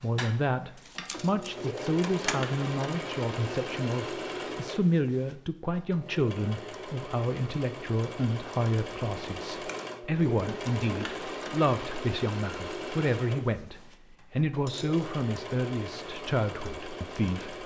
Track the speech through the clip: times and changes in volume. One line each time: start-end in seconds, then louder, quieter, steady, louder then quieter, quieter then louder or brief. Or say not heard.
0.0-17.6 steady.